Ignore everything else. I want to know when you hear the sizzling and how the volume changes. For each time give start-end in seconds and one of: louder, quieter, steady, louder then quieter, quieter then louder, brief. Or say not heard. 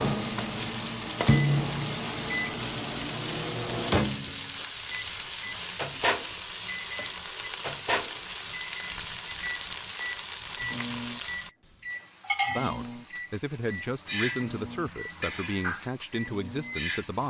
0.0-17.2 steady.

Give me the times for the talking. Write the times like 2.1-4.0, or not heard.
12.4-17.2.